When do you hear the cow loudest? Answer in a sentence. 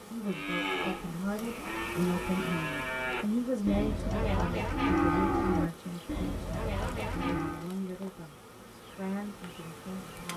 The volume of the cow peaks at 5 seconds.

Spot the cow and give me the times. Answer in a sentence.
The cow can be heard from 0.2 to 7.7 s.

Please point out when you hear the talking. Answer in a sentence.
The talking can be heard from 0.0 to 10.3 s.